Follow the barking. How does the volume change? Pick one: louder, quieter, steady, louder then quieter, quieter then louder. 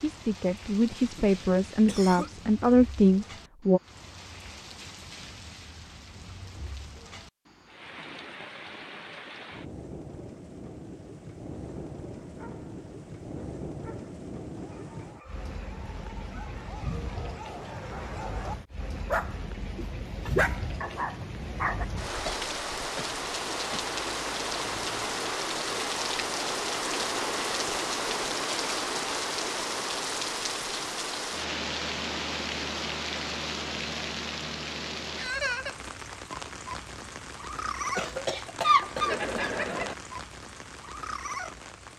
louder.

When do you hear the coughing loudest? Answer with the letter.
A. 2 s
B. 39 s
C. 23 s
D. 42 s
B.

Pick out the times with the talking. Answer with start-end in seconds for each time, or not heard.
0.0-3.8.